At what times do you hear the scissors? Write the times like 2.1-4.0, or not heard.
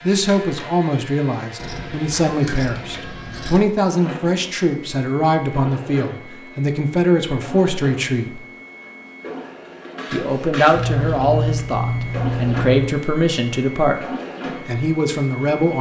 1.6-3.6, 10.8-12.8.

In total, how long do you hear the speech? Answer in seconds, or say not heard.
14 s.